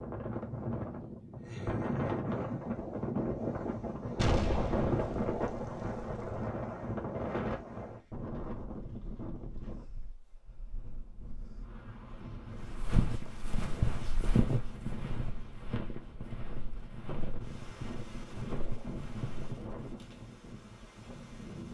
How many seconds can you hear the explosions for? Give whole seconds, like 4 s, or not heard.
2 s.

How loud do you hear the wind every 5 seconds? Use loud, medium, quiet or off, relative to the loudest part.
loud, loud, quiet, quiet, quiet.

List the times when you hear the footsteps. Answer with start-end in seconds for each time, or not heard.
12.6-19.9.